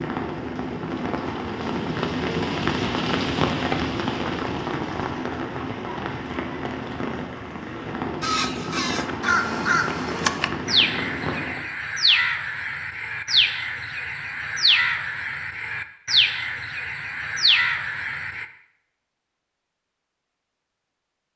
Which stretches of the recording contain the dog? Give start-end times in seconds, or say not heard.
not heard.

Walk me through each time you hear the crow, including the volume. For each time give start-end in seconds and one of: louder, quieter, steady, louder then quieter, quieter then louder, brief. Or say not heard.
8.2-18.4 steady.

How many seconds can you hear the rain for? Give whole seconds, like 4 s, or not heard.
12 s.